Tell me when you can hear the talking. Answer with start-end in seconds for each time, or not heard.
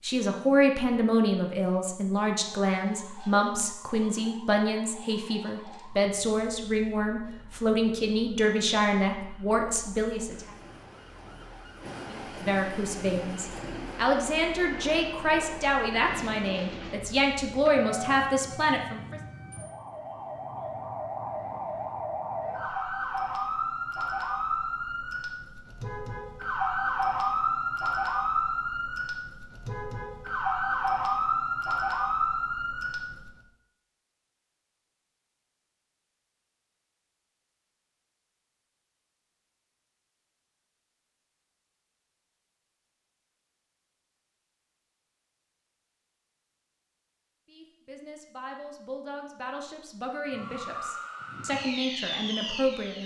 0.0-10.5, 12.1-19.2, 47.5-53.0.